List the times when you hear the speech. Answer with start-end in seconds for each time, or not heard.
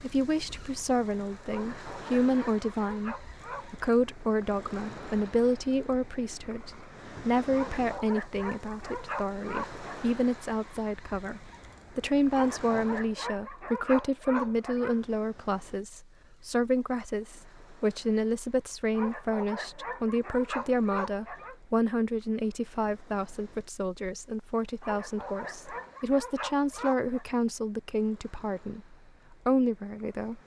0.0-30.4.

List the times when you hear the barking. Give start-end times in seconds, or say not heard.
1.4-3.8, 7.5-10.0, 12.3-15.0, 18.9-21.6, 24.8-27.2.